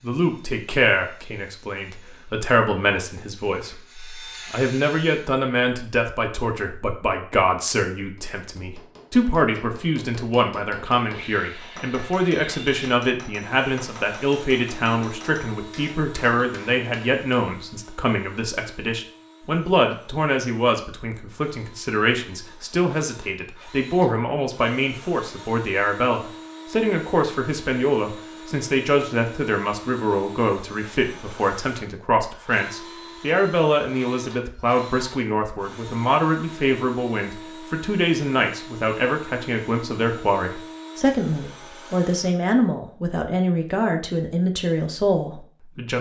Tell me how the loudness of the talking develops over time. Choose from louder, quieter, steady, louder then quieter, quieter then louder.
steady.